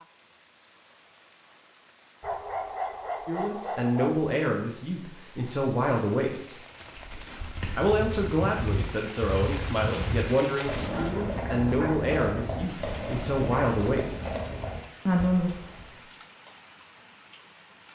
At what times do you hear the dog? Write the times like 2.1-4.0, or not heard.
2.2-4.2, 10.8-12.1.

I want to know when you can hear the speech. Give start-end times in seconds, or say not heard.
3.2-6.5, 7.8-14.2, 15.1-15.5.